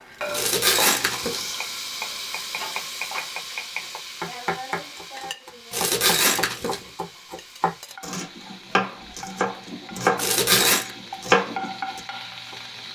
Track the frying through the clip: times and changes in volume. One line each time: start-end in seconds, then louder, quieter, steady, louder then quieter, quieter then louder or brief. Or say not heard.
0.0-12.9 quieter then louder.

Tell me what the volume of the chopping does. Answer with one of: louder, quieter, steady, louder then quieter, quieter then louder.
louder.